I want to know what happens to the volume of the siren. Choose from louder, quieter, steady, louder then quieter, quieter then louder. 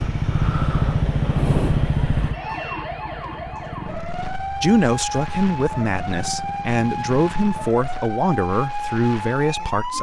louder.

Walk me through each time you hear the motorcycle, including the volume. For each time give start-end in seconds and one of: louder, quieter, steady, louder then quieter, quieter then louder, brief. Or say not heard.
0.0-7.7 quieter.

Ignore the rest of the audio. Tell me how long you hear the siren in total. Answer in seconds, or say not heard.
10 s.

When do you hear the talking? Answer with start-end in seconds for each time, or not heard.
4.6-9.9.